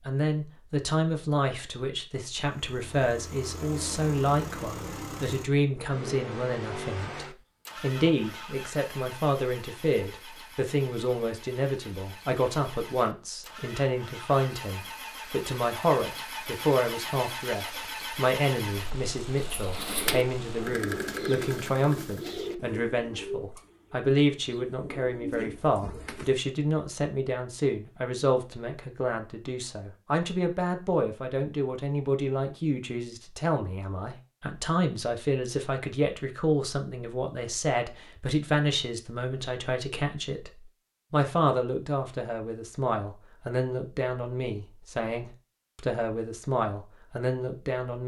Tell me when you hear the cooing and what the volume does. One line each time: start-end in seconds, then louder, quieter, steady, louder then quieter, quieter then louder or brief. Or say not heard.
19.4-26.4 quieter then louder.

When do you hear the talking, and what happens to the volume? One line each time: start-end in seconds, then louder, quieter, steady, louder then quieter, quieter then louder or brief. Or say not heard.
0.1-40.5 steady
41.1-48.0 steady.